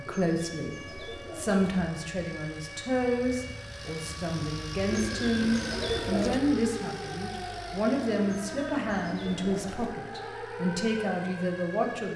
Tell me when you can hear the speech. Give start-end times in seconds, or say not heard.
0.0-12.1.